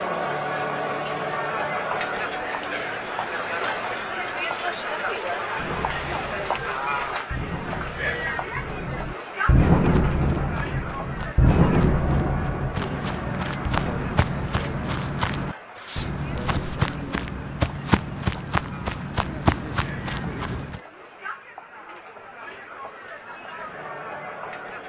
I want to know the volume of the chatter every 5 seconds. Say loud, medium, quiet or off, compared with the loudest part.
loud, loud, medium, quiet, medium.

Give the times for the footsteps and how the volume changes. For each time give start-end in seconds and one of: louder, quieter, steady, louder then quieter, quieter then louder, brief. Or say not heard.
9.8-20.8 louder.